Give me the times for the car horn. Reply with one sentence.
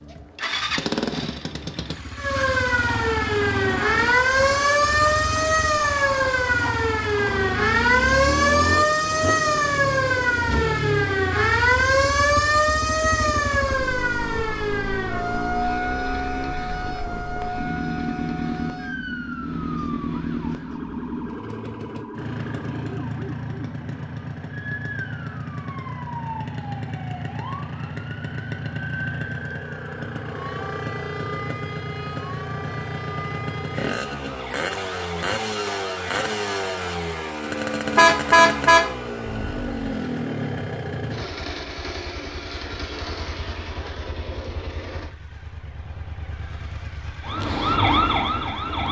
You can hear the car horn from 38.0 to 39.9 s.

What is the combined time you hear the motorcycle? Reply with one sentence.
You can hear the motorcycle for 49 seconds altogether.